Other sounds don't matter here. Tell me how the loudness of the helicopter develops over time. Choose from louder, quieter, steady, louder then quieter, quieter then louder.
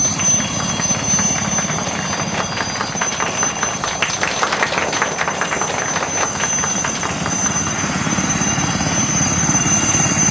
quieter then louder.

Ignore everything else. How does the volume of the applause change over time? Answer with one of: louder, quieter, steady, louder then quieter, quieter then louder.
louder then quieter.